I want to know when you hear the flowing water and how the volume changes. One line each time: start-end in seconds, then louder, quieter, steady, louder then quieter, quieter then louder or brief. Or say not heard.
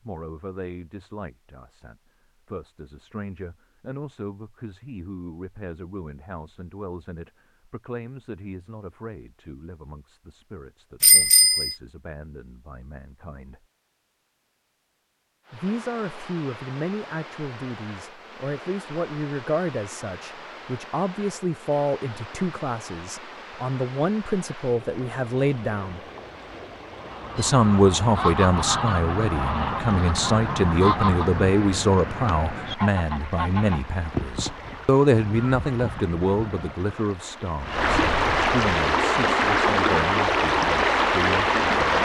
15.4-42.0 louder.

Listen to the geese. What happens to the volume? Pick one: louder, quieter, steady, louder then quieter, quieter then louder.
quieter.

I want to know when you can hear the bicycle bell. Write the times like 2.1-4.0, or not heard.
11.0-11.8.